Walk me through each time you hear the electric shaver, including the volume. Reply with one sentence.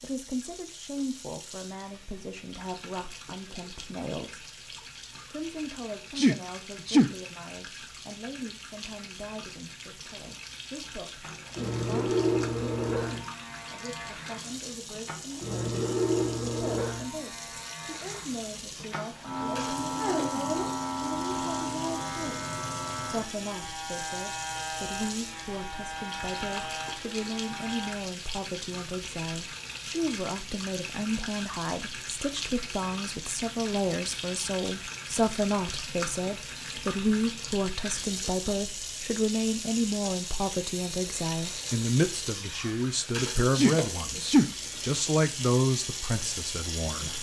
The electric shaver can be heard from 11.2 to 28.0 s, getting quieter.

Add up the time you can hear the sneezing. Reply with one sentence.
You can hear the sneezing for 2 seconds altogether.